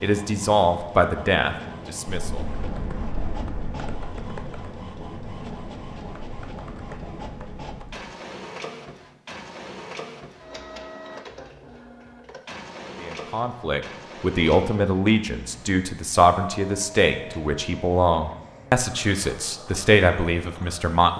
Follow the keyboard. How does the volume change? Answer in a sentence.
The volume of the keyboard goes down.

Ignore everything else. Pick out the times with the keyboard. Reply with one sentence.
The keyboard can be heard from 2.0 to 8.0 s.